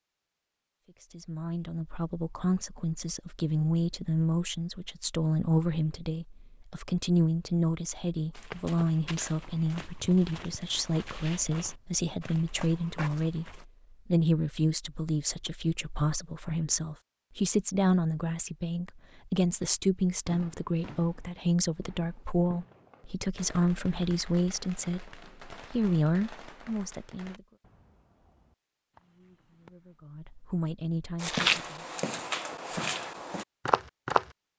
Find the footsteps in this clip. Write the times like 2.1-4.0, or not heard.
8.3-13.7, 31.2-34.3.